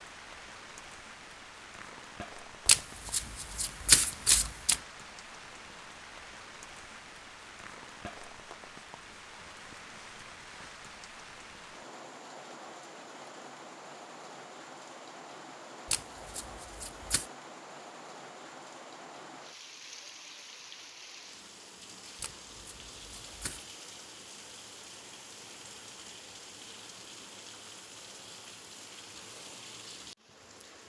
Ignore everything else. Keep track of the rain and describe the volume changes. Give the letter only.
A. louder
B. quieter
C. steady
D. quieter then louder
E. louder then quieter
C.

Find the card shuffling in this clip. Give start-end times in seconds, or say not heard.
2.6-4.8, 15.9-17.2, 22.2-23.6.